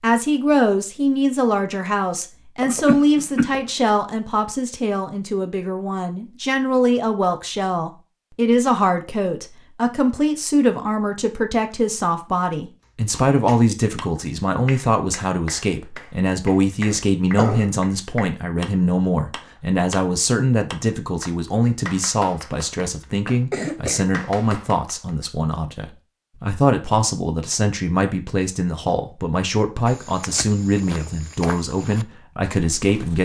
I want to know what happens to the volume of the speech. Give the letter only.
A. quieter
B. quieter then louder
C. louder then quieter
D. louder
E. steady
E.